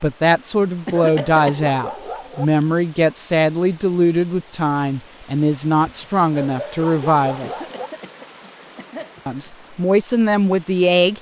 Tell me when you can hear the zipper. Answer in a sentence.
You can't hear the zipper here.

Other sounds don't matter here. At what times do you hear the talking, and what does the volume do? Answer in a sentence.
The talking can be heard from 0.0 to 7.7 s, at a steady volume; and briefly from 9.2 to 11.1 s.